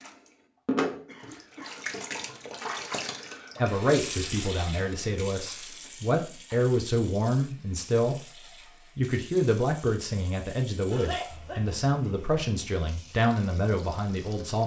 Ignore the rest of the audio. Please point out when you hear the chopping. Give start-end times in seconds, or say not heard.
not heard.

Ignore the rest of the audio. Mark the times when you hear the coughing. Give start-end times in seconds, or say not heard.
1.1-2.5, 5.5-6.5, 10.9-11.8.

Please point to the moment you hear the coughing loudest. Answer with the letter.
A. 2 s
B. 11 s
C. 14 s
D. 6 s
B.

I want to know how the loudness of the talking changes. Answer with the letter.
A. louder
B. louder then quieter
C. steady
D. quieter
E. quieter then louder
C.